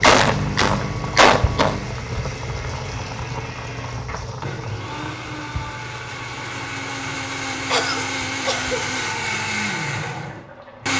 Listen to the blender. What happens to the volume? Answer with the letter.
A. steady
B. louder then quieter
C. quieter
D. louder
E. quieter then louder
D.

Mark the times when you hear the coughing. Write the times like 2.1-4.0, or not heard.
0.0-1.9, 7.7-8.8.